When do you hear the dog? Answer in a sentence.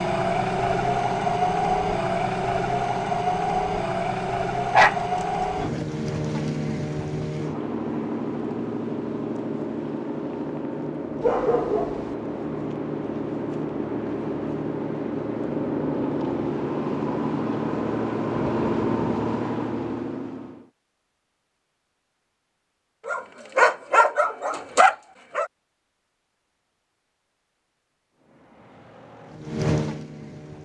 The dog can be heard from 4.7 to 5.8 s, from 11.2 to 12.2 s and from 23.1 to 25.4 s.